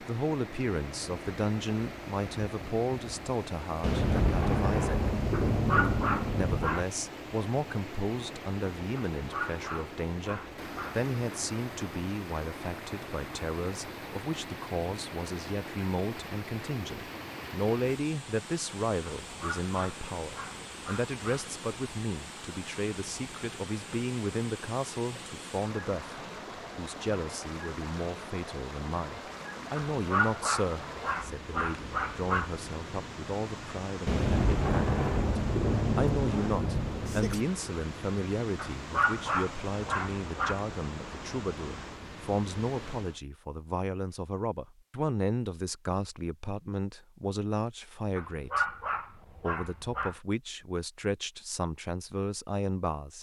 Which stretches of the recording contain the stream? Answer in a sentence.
You can hear the stream from 0.0 to 43.2 s.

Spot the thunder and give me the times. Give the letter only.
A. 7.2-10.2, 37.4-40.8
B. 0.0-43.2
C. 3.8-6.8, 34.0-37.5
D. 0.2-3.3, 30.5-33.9
C.